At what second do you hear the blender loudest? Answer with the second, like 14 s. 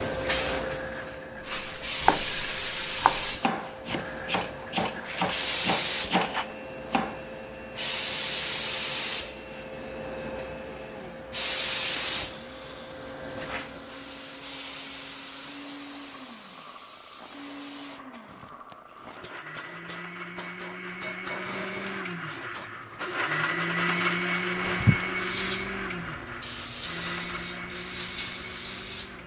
24 s.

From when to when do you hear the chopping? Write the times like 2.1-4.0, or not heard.
1.6-7.2.